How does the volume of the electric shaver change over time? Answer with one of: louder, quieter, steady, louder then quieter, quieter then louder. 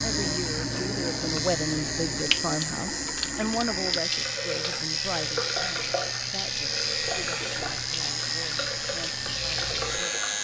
steady.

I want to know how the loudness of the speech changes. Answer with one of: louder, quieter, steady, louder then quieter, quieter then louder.
quieter.